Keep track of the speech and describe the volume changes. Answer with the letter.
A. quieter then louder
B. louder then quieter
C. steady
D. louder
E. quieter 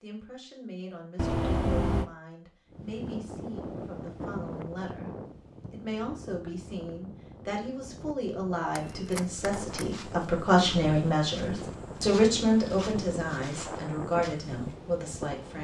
D.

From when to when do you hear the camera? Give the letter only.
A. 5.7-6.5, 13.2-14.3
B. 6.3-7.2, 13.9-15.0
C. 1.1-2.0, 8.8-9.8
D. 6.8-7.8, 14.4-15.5
C.